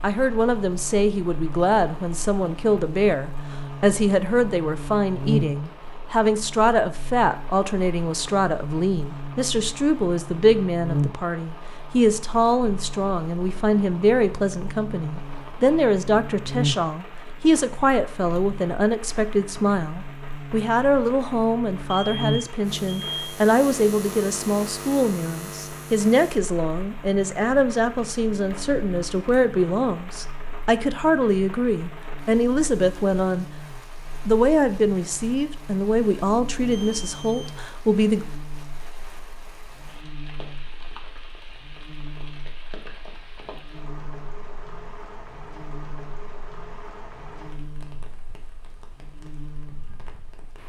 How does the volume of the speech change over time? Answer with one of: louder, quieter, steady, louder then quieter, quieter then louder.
steady.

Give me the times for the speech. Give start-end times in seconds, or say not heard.
0.0-33.5, 34.2-38.2.